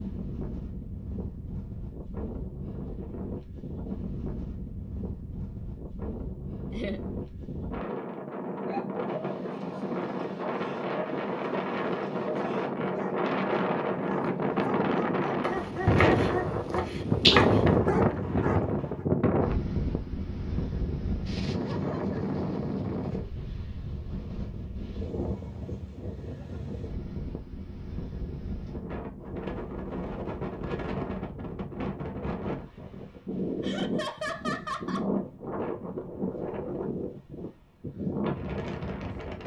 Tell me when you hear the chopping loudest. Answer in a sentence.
The volume of the chopping peaks at 17 seconds.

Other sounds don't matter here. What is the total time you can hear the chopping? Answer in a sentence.
The chopping can be heard for 2 seconds in total.